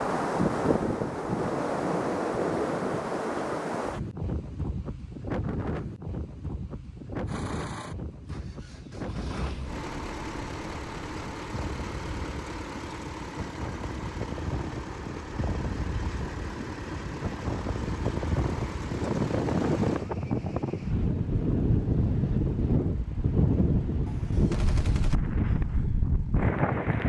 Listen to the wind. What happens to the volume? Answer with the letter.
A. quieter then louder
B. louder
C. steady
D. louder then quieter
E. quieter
A.